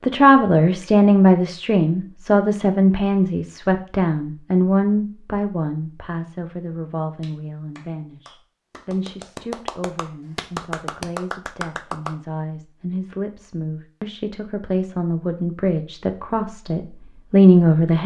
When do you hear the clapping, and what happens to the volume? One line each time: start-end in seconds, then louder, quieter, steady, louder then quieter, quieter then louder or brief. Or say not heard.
7.2-12.2 louder.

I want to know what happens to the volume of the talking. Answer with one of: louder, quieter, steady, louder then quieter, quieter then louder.
quieter then louder.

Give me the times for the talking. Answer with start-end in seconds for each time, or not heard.
0.0-18.0.